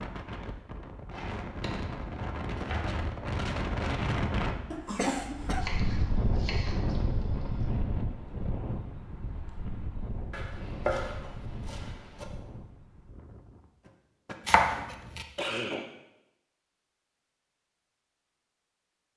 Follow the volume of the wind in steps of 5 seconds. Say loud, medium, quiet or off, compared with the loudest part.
loud, loud, medium, off.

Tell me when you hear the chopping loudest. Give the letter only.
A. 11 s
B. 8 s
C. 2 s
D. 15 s
D.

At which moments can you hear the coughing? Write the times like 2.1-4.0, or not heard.
4.7-5.7, 13.8-14.3, 15.3-15.8.